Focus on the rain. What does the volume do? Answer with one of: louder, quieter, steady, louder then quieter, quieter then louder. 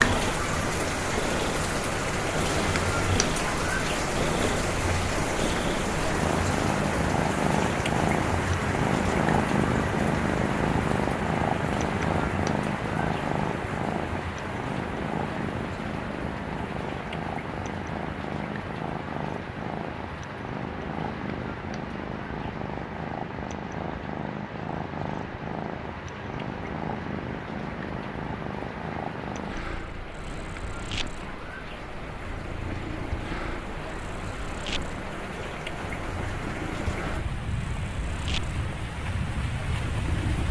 quieter then louder.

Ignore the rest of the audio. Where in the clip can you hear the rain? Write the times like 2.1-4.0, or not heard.
0.0-40.4.